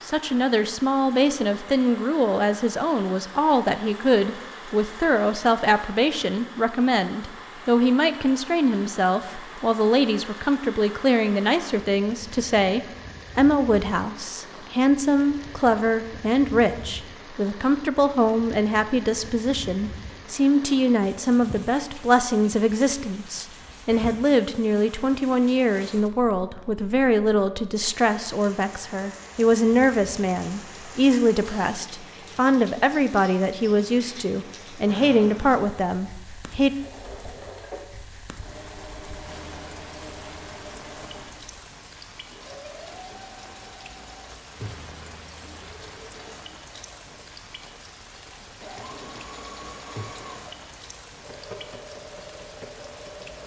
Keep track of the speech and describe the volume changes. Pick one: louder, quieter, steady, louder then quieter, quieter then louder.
steady.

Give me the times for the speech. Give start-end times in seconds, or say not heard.
0.1-36.7.